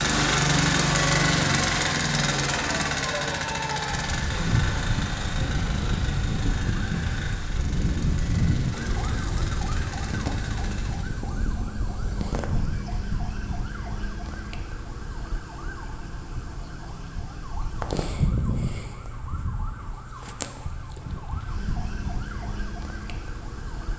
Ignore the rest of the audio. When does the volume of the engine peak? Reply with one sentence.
The volume of the engine peaks at 1 second.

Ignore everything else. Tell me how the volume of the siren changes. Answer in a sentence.
The volume of the siren goes down.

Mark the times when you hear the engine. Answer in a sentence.
The engine can be heard from 0.0 to 11.2 s.